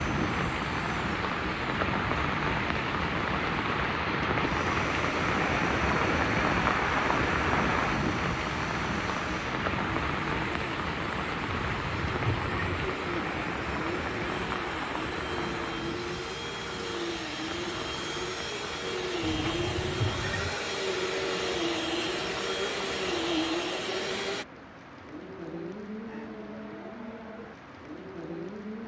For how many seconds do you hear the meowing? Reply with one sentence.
You can hear the meowing for 3 seconds altogether.